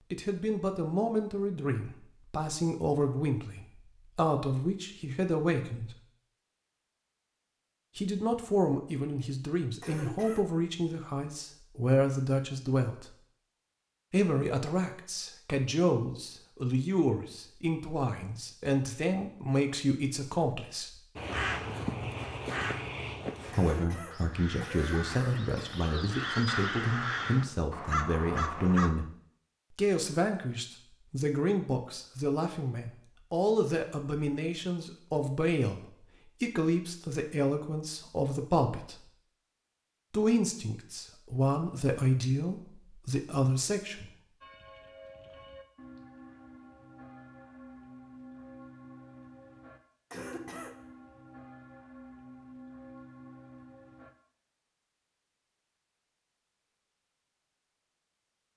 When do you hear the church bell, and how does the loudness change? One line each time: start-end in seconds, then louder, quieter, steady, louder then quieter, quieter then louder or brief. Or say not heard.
44.4-54.1 steady.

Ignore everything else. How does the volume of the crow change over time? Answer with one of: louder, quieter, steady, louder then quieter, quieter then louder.
quieter then louder.